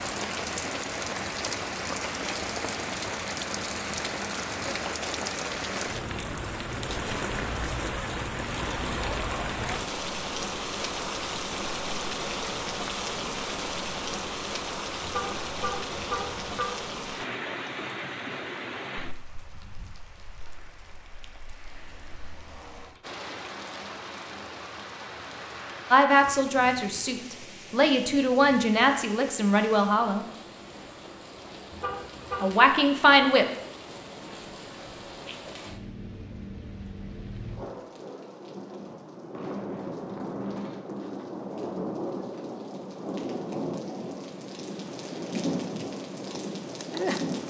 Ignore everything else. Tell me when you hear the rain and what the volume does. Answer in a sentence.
The rain can be heard from 0.0 to 47.4 s, getting quieter then louder.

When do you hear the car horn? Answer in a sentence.
The car horn can be heard from 15.0 to 16.7 s and from 31.7 to 32.5 s.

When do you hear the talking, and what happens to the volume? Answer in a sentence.
You can hear the talking from 25.9 to 30.2 s, getting quieter then louder; and briefly from 32.4 to 33.5 s.